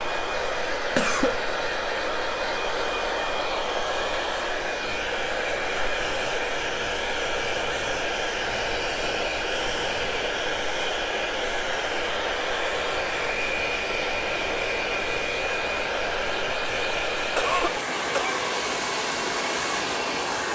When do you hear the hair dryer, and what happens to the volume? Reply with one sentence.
The hair dryer can be heard from 0.0 to 20.4 s, at a steady volume.